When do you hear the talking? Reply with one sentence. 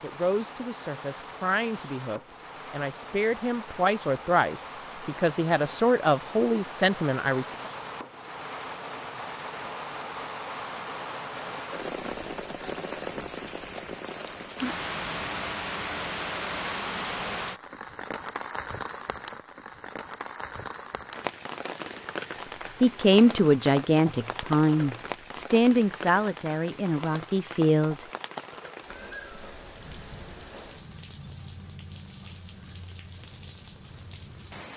You can hear the talking from 0.0 to 7.7 s and from 22.4 to 27.9 s.